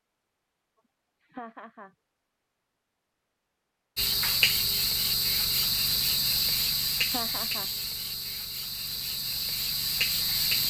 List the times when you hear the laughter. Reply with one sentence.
The laughter can be heard from 1.2 to 1.9 s and from 7.0 to 7.7 s.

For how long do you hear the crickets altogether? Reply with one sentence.
You can hear the crickets for 7 seconds altogether.